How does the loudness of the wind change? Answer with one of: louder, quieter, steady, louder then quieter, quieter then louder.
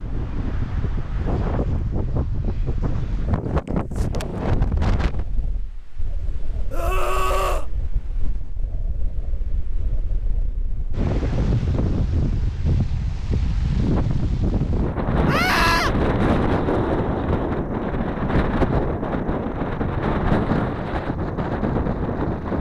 quieter then louder.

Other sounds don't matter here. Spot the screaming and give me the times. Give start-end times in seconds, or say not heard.
6.7-7.7, 15.2-15.9.